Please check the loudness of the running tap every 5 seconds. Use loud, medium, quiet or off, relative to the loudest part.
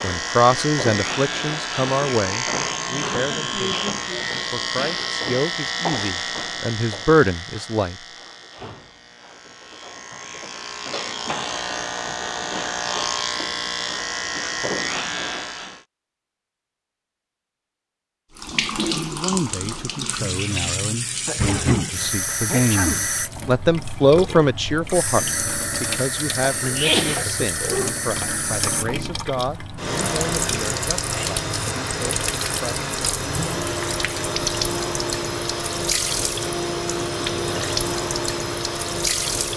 off, off, off, loud, loud, loud, loud, loud.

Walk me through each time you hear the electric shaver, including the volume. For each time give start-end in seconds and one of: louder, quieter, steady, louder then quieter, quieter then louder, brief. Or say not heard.
0.0-15.8 quieter then louder.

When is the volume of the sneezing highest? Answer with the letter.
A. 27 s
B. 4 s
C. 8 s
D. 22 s
A.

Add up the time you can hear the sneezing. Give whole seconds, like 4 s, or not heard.
5 s.